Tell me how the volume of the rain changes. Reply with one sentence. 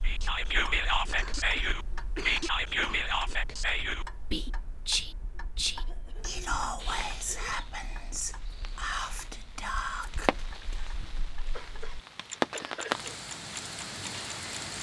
The loudness of the rain goes up.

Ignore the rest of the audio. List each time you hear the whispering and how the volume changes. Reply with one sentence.
The whispering can be heard from 0.0 to 10.9 s, getting quieter.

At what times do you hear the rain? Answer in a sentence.
You can hear the rain from 6.8 to 14.7 s.